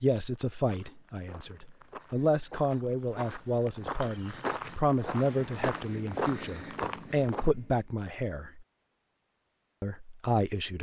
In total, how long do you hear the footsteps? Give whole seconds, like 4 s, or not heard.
7 s.